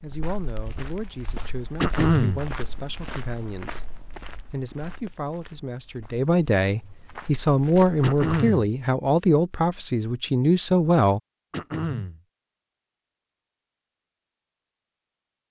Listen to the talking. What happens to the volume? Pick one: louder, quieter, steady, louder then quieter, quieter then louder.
louder.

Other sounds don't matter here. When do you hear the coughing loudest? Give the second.
2 s.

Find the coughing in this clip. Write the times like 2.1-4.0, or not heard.
1.8-2.5, 8.0-8.7, 11.5-12.2.